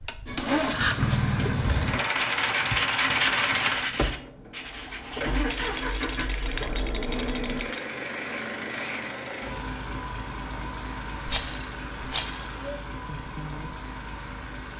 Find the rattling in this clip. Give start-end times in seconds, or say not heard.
0.7-1.1, 5.5-7.8, 11.2-12.4.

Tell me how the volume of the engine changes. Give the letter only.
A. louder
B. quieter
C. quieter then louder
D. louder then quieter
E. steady
B.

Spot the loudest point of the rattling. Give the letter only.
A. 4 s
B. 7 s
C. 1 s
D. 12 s
D.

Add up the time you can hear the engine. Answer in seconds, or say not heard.
15 s.